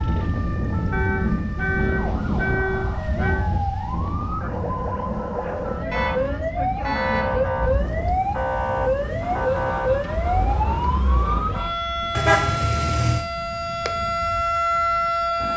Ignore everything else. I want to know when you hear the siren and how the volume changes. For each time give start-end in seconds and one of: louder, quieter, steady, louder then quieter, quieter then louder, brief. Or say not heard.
0.0-15.5 louder.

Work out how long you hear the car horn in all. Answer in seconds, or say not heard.
5 s.